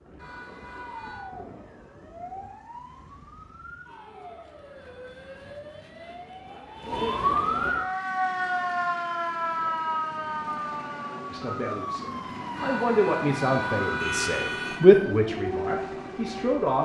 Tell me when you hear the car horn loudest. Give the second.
14 s.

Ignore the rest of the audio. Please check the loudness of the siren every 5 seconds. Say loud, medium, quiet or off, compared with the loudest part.
quiet, loud, medium, medium.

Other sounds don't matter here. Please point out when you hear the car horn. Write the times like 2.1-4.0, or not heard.
0.1-1.2, 12.6-14.8.